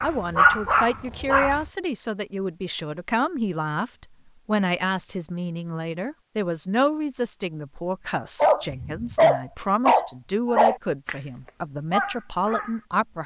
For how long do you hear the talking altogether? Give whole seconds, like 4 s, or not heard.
13 s.